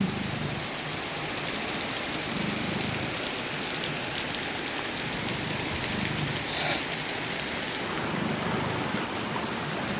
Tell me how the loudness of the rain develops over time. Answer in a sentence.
The loudness of the rain stays about the same.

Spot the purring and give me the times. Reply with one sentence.
The purring can be heard from 0.0 to 9.9 s.